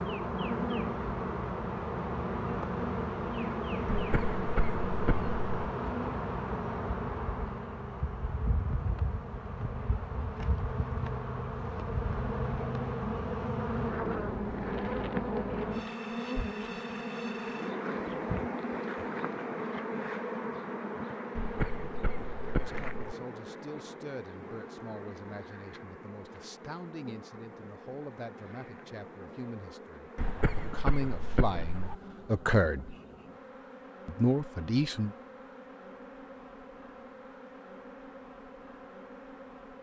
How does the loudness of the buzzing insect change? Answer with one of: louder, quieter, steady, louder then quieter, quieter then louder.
quieter.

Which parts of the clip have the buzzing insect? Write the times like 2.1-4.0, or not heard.
0.0-39.7.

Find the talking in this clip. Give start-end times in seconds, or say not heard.
22.6-33.0, 34.0-35.1.